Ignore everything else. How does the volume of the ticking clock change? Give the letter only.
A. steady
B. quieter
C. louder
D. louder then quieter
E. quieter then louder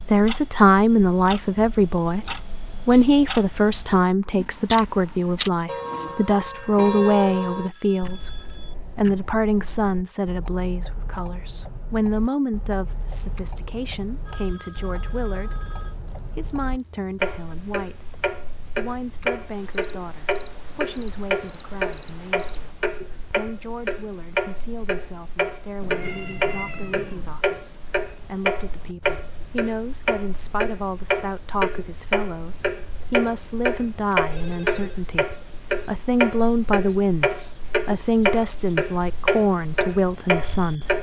E.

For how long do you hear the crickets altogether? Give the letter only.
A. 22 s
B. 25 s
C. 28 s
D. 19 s
C.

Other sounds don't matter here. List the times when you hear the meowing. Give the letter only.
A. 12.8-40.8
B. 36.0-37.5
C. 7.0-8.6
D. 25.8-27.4
D.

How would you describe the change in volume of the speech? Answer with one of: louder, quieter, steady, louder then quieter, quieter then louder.
quieter then louder.